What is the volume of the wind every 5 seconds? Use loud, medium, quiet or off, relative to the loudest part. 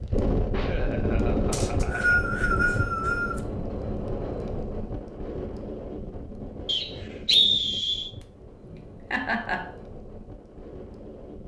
loud, medium, quiet.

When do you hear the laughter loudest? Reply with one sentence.
The loudest moment of the laughter is at 9 seconds.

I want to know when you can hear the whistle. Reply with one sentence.
The whistle can be heard from 1.5 to 3.4 s and from 6.7 to 8.1 s.